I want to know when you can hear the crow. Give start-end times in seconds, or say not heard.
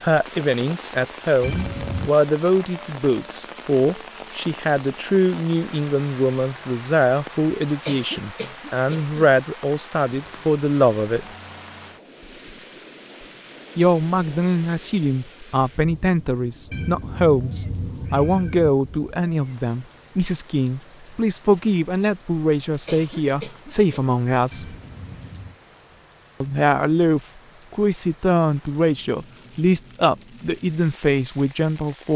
not heard.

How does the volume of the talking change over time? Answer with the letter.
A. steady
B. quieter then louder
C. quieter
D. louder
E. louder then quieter
A.